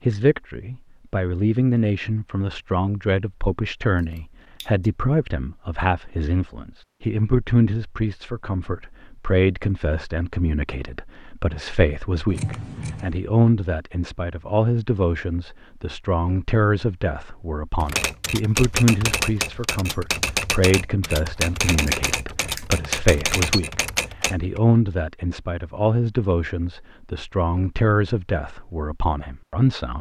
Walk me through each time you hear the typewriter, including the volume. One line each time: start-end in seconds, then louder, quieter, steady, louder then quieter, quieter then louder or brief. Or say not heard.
17.8-24.6 steady.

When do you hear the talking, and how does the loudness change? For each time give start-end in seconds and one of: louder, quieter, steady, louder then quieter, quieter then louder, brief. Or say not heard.
0.1-29.9 steady.